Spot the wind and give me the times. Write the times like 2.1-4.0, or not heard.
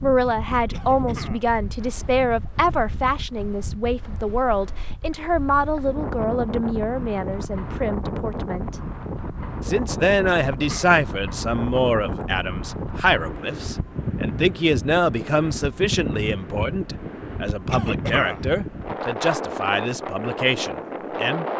0.0-21.5.